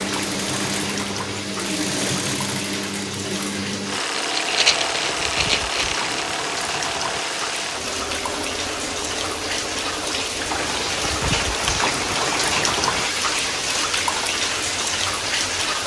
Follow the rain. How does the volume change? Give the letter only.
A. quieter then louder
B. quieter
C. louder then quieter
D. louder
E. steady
D.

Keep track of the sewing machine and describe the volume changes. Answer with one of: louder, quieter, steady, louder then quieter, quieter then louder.
quieter.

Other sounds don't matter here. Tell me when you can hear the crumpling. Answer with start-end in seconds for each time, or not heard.
4.2-6.1.